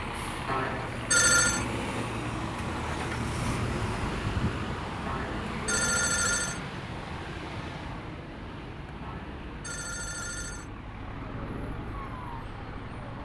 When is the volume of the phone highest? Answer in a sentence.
The volume of the phone peaks at 1 second.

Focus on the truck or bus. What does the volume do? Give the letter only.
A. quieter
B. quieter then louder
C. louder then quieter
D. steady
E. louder
A.